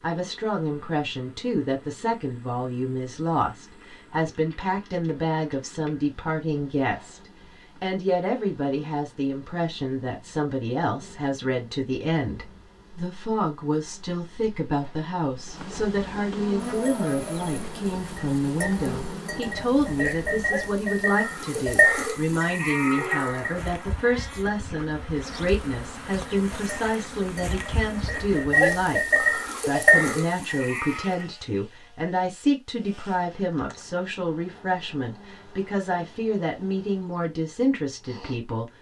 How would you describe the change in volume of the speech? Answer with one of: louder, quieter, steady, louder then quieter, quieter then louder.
steady.